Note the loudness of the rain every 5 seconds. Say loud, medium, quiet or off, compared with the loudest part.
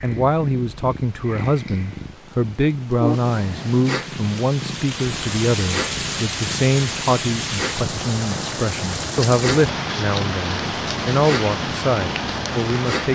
quiet, loud, loud.